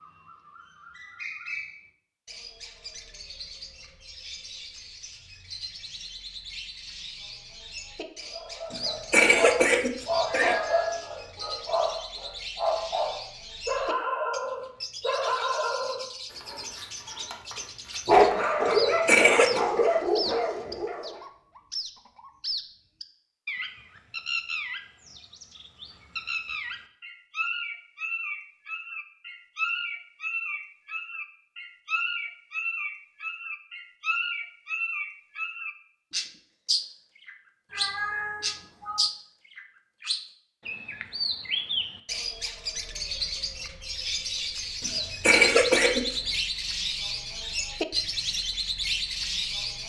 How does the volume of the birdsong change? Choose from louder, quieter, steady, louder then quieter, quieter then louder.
louder.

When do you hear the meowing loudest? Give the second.
38 s.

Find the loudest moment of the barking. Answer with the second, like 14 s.
18 s.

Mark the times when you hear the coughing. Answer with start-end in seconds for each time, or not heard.
8.7-10.6, 18.6-19.6, 44.8-46.4.